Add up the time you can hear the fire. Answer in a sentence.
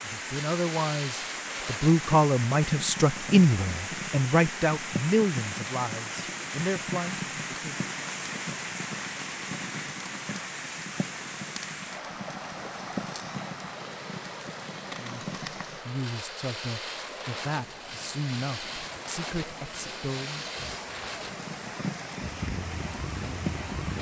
The fire can be heard for 24 seconds in total.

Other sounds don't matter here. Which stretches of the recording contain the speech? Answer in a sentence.
The speech can be heard from 0.0 to 7.9 s and from 14.9 to 20.4 s.